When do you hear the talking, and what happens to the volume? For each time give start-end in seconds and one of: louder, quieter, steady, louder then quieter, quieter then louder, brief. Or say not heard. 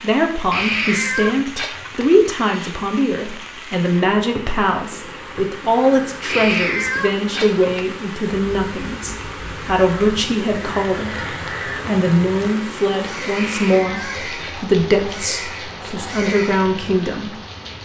0.0-17.4 steady.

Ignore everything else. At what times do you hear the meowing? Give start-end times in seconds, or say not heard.
0.5-2.1, 6.2-7.7, 13.3-14.7.